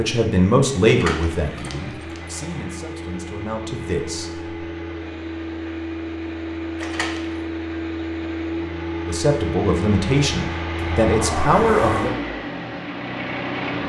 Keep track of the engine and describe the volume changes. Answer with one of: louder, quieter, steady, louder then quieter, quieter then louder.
louder.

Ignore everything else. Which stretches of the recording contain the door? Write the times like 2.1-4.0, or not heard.
0.8-2.4, 6.8-7.3, 10.8-12.2.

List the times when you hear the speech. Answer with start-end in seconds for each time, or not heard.
0.0-4.5, 9.1-12.1.